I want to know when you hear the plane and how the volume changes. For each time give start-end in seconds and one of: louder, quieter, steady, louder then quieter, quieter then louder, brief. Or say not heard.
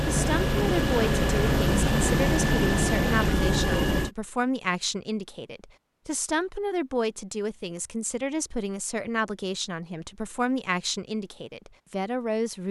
0.0-4.1 steady.